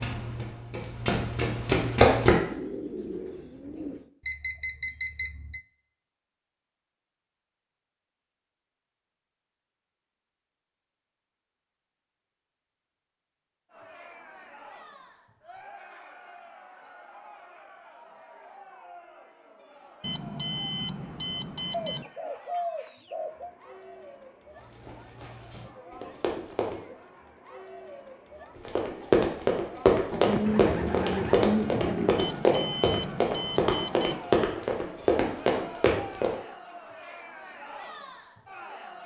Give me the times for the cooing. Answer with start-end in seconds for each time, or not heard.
2.4-4.1, 21.7-23.5, 30.1-32.1.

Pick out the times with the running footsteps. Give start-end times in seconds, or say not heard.
0.0-2.4, 24.6-26.8, 28.6-36.4.